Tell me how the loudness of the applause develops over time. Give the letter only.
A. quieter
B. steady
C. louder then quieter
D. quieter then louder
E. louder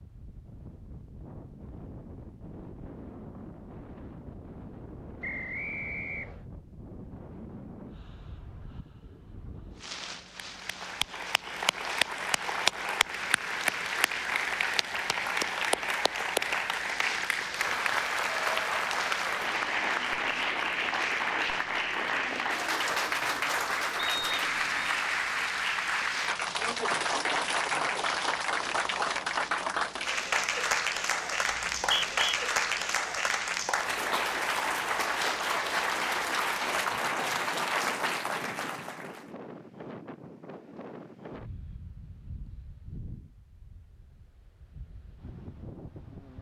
B.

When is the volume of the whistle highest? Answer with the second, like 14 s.
32 s.